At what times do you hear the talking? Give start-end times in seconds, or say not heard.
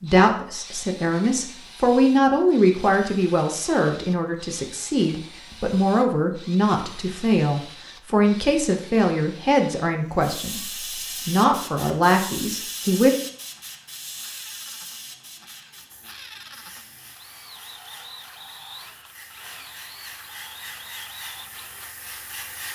0.0-13.2.